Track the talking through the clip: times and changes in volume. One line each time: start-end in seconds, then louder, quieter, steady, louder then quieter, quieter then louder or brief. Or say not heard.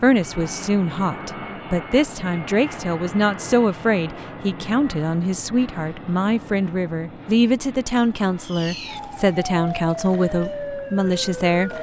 0.0-11.7 steady.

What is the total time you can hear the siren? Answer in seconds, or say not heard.
3 s.